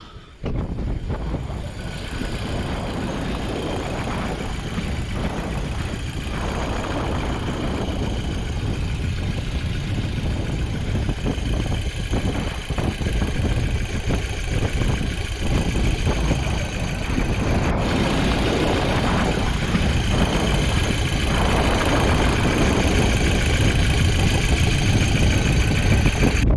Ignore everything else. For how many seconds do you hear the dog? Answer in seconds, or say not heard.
not heard.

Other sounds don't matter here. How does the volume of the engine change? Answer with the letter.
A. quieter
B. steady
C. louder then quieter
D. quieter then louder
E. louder
E.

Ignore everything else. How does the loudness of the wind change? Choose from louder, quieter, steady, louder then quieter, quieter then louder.
louder.